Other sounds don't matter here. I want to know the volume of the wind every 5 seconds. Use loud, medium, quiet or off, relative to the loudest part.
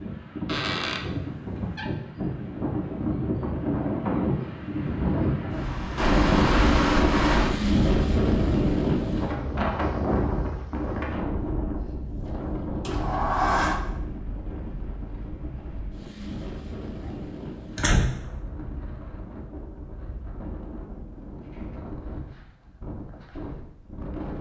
medium, loud, medium, quiet, quiet.